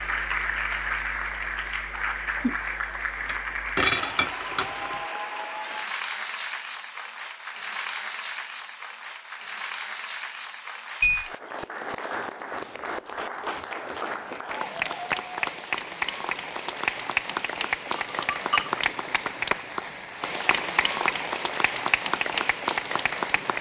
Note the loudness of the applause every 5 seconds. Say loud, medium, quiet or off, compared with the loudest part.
loud, medium, medium, loud, loud.